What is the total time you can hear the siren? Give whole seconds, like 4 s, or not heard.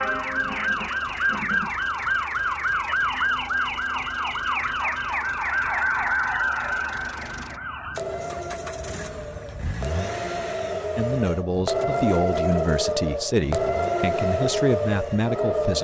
16 s.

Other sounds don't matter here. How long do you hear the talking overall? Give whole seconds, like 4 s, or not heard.
5 s.